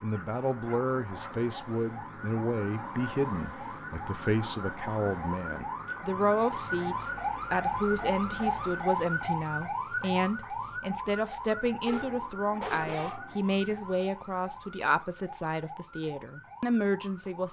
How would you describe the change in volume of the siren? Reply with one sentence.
The volume of the siren goes up, then down.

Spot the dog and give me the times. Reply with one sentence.
The dog can be heard from 0.1 to 1.4 s and from 11.8 to 13.6 s.